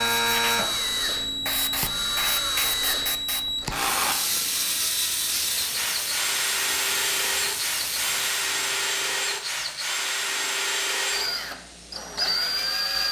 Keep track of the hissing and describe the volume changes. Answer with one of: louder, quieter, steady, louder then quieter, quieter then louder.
quieter.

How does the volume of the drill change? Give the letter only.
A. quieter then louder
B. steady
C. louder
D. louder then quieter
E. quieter
B.